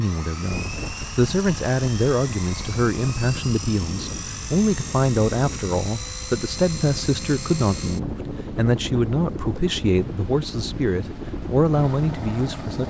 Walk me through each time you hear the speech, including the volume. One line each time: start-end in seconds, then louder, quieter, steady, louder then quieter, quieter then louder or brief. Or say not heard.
0.0-12.8 steady.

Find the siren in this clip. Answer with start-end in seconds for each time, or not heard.
not heard.